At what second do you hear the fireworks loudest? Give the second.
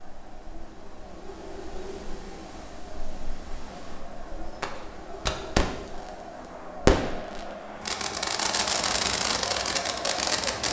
7 s.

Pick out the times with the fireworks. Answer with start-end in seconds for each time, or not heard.
4.6-6.1, 6.8-10.6.